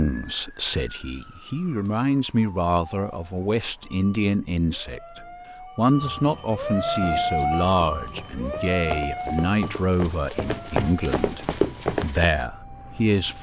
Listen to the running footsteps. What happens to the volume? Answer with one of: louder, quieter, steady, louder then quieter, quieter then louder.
louder.